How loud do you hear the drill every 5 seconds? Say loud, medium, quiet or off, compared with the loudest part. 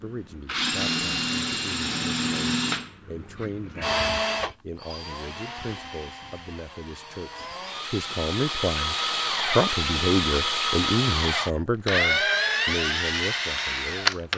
loud, medium, loud.